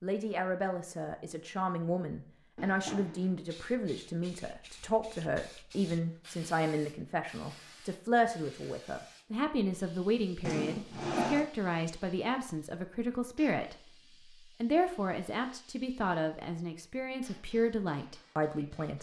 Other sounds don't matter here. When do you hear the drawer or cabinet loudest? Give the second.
11 s.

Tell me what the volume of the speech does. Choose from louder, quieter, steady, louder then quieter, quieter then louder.
steady.